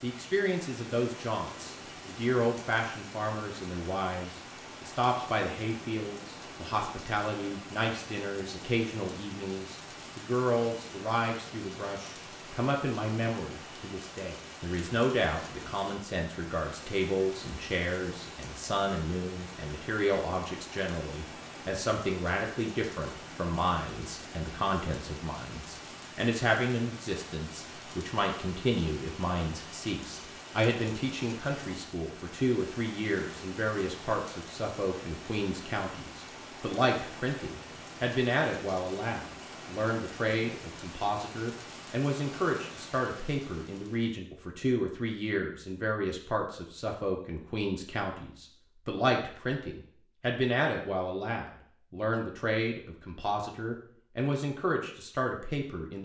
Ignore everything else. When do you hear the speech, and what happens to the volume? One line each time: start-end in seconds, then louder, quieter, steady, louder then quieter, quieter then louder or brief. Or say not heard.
0.0-56.0 steady.